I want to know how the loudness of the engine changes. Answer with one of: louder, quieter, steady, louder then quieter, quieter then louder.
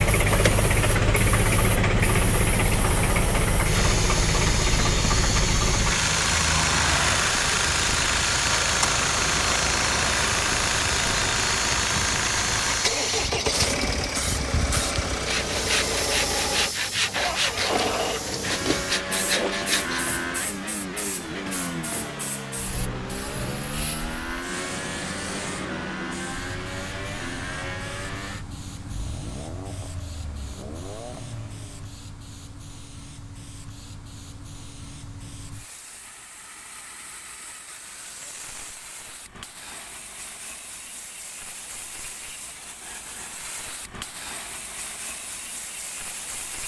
quieter.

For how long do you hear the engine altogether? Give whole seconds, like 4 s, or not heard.
32 s.